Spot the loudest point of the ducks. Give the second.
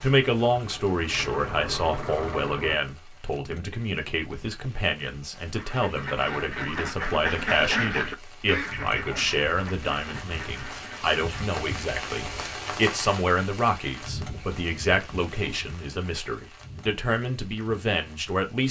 8 s.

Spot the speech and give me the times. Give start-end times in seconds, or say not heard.
0.0-18.6.